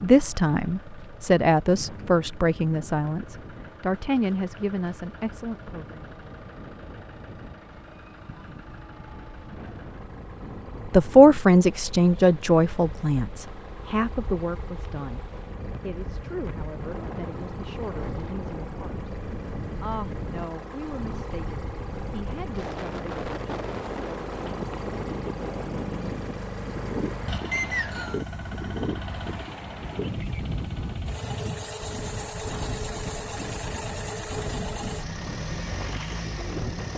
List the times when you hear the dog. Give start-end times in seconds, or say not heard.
not heard.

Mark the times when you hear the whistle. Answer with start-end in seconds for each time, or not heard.
27.5-28.2.